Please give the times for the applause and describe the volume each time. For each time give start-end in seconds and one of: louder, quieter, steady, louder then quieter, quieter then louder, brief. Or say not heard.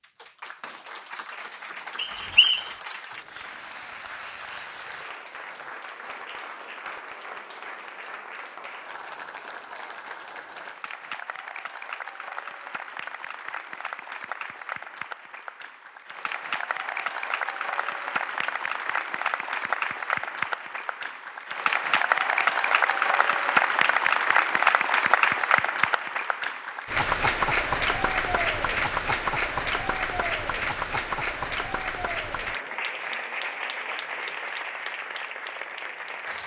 0.0-36.4 louder then quieter.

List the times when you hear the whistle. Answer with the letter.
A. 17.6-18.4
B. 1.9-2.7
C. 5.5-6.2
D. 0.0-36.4
B.